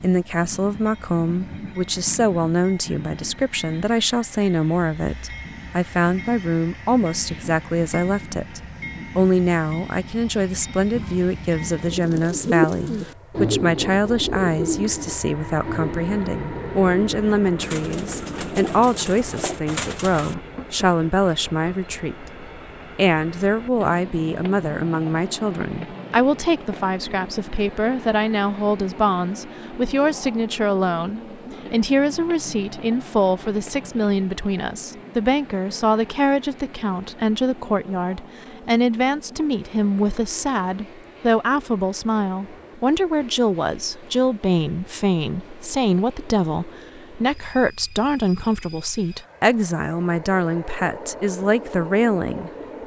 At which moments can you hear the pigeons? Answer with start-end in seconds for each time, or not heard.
10.9-20.4.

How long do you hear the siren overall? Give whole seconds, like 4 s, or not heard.
not heard.